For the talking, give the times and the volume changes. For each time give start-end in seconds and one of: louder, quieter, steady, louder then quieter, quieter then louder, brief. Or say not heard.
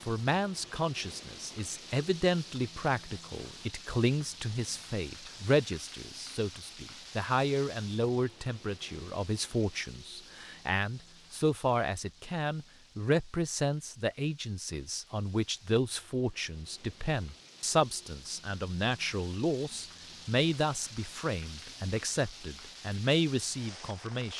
0.0-24.3 steady.